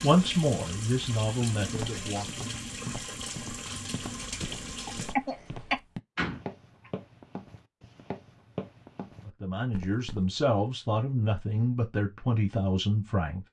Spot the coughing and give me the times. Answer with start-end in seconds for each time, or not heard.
4.8-5.8.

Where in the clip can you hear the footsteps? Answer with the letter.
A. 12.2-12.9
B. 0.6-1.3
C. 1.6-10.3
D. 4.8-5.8
C.